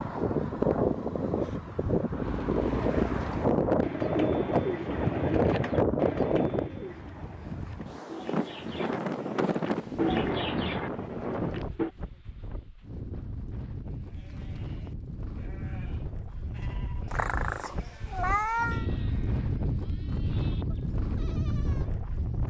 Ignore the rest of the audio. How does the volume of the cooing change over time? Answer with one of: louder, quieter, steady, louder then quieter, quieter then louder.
quieter then louder.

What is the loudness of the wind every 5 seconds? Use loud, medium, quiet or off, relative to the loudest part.
loud, loud, medium, medium, medium.